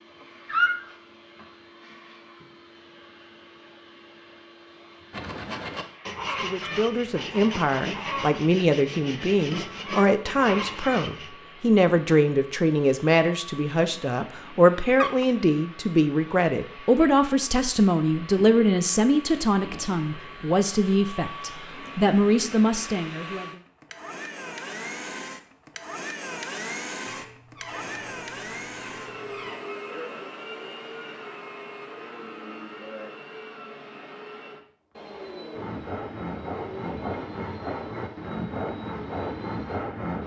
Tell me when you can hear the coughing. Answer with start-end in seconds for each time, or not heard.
not heard.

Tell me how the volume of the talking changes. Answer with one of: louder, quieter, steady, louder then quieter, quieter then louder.
steady.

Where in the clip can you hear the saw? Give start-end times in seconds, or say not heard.
5.1-11.3, 35.5-40.2.